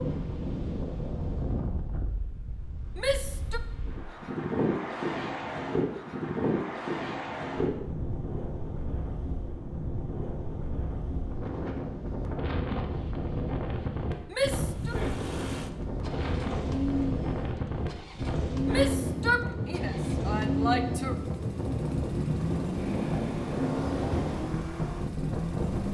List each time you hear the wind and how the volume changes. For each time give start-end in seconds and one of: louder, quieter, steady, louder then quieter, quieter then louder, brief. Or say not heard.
0.0-25.9 steady.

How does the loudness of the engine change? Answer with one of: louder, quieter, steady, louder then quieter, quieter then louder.
steady.